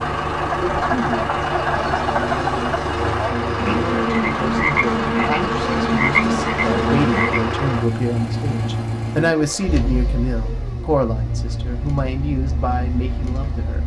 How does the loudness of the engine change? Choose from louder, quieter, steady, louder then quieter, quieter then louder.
quieter.